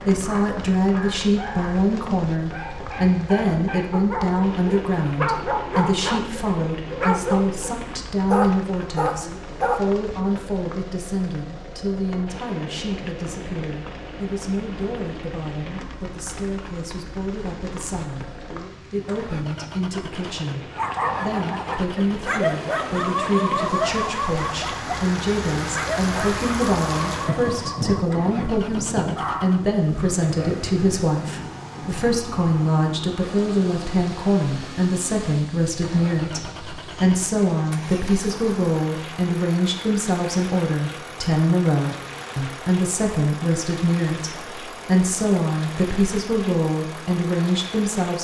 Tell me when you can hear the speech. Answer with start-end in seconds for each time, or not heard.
0.0-48.2.